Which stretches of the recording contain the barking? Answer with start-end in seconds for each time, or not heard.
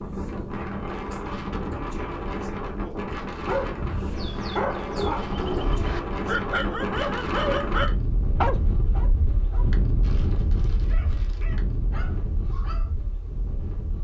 3.5-12.9.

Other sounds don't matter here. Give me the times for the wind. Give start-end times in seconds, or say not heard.
0.0-13.9.